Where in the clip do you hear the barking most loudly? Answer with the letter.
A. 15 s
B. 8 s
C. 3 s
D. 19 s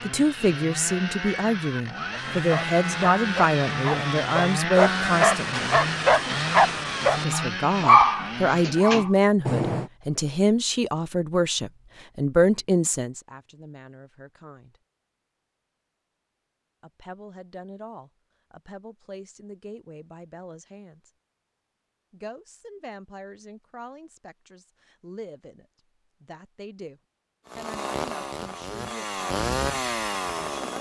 B.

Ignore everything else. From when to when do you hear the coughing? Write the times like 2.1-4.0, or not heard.
not heard.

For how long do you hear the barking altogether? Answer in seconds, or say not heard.
8 s.